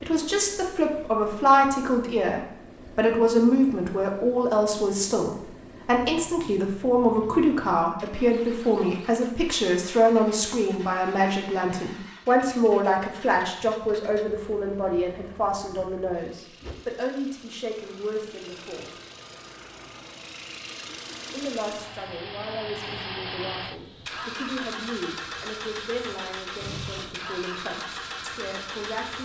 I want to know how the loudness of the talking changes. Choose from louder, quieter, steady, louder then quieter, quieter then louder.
quieter.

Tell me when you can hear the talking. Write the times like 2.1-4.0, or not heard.
0.0-18.9, 21.3-29.2.